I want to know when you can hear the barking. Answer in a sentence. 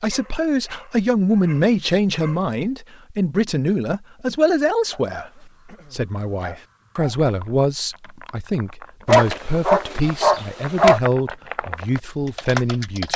The barking can be heard from 0.1 to 2.5 s, from 4.9 to 7.2 s and from 9.1 to 11.0 s.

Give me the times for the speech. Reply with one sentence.
You can hear the speech from 0.0 to 13.1 s.